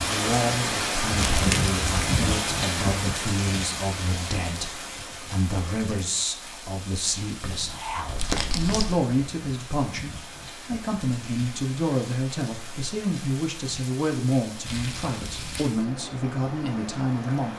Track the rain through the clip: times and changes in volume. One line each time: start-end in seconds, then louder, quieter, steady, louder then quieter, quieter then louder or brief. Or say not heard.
0.0-17.5 quieter.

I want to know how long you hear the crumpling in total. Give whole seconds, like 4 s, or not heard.
3 s.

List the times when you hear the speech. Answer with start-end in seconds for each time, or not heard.
0.1-17.5.